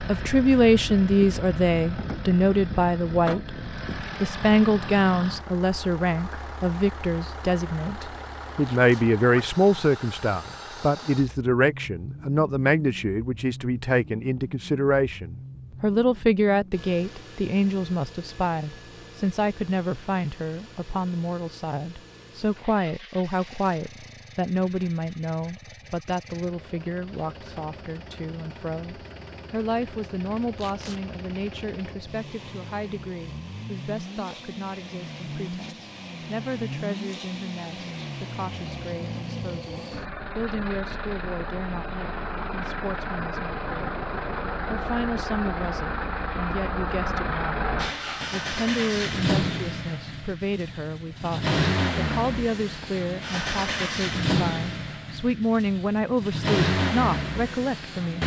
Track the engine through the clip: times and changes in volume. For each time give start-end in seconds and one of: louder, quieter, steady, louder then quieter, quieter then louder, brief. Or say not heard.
0.0-58.2 quieter then louder.